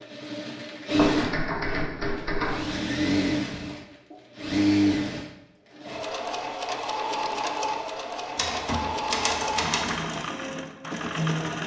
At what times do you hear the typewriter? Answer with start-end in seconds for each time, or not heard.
0.9-2.8, 8.3-10.2.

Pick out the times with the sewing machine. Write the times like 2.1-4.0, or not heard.
0.0-11.6.